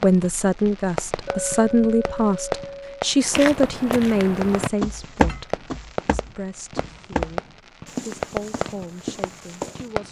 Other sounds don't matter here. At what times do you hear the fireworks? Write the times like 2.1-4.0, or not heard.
0.0-10.0.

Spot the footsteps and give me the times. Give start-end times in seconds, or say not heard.
3.2-9.9.